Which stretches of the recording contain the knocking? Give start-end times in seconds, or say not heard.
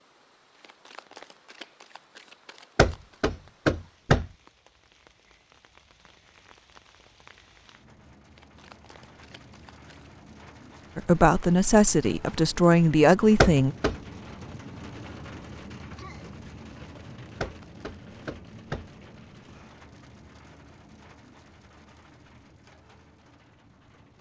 2.8-4.2, 13.4-13.9, 17.4-18.9.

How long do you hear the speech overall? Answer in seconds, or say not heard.
3 s.